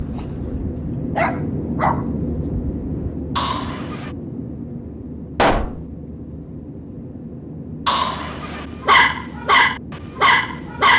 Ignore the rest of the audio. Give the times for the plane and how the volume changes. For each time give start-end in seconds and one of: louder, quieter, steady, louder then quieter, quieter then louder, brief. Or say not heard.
0.0-10.9 quieter.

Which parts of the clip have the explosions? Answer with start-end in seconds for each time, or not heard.
5.3-5.8.